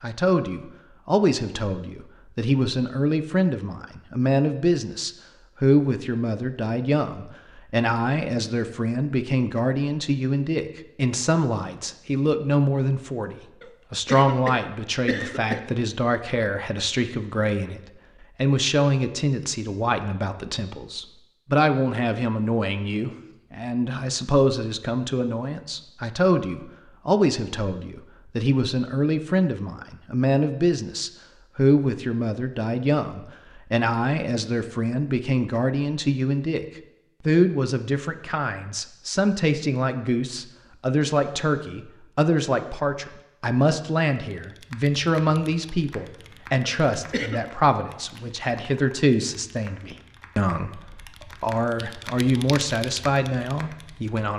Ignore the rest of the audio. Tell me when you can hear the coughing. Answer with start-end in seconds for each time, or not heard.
13.6-15.6, 46.6-47.5.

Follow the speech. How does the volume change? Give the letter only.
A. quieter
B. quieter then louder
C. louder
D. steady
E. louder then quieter
D.